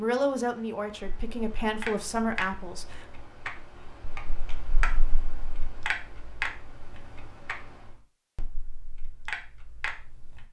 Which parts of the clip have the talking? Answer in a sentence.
You can hear the talking from 0.0 to 3.0 s.